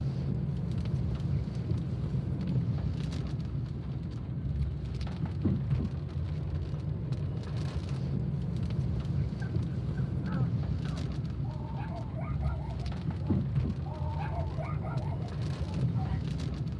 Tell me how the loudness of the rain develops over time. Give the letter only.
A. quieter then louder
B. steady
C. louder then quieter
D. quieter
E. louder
B.